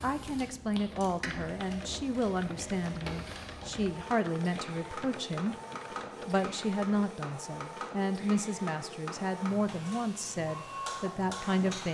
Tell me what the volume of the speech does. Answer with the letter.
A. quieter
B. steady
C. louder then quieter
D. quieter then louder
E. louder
B.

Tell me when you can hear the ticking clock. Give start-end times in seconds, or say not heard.
not heard.